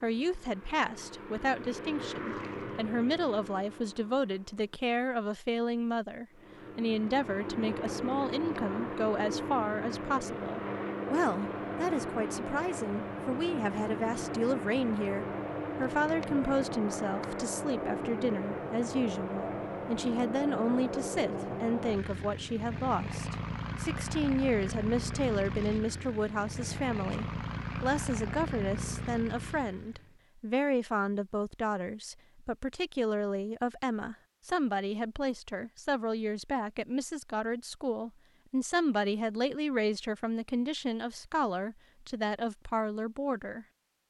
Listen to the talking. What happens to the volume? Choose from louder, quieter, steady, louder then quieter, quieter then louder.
steady.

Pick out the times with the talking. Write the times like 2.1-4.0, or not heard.
0.0-44.0.